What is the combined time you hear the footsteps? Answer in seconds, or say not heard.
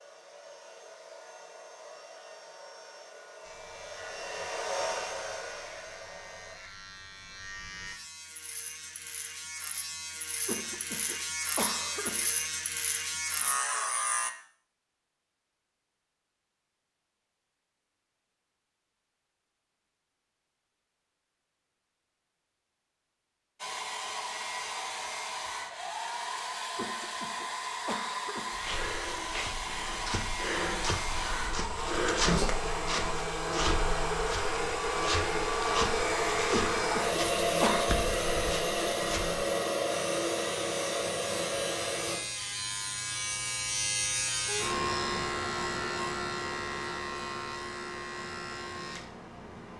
11 s.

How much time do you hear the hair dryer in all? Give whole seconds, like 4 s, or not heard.
25 s.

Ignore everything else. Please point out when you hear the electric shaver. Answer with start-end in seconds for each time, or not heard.
3.4-14.3, 39.9-49.7.